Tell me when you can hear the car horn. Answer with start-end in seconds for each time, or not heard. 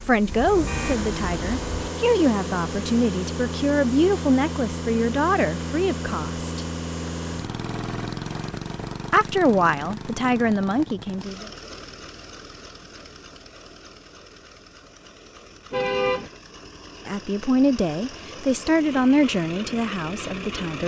0.3-1.9, 15.7-16.3.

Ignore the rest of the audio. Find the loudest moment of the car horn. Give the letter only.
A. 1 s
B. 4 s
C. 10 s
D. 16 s
D.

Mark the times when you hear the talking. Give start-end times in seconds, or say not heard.
0.1-6.7, 9.1-11.5, 17.1-20.8.